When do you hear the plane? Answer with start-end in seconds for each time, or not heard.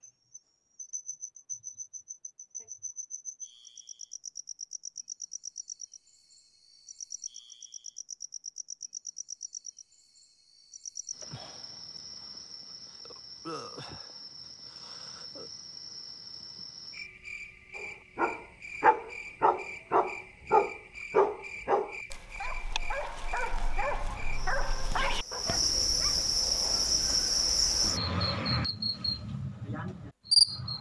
not heard.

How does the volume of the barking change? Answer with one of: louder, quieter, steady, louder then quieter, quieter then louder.
quieter.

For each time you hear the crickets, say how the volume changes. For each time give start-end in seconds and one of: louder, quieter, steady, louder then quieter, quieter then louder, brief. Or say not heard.
0.0-30.7 louder.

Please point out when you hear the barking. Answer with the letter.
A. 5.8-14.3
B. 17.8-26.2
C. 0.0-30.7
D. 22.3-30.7
B.